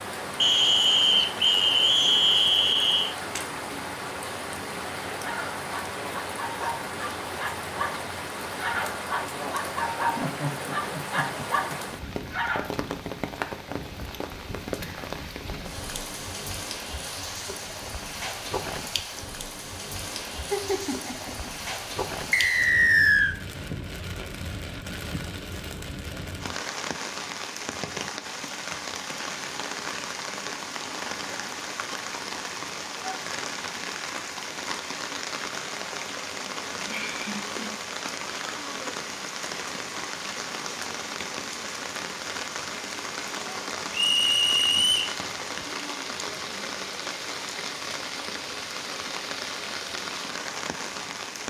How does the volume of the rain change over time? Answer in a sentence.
The volume of the rain stays about the same.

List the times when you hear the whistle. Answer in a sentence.
The whistle can be heard from 0.4 to 3.1 s, from 22.3 to 23.4 s and from 43.9 to 45.1 s.